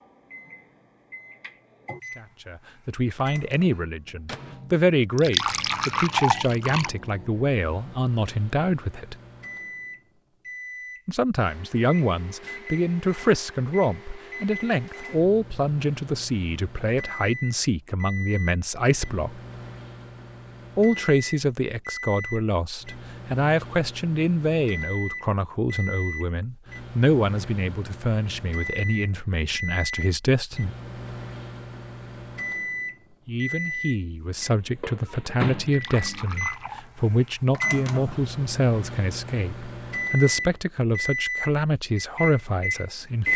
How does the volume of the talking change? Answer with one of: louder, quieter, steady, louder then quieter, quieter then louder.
steady.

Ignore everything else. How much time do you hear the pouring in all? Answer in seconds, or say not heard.
3 s.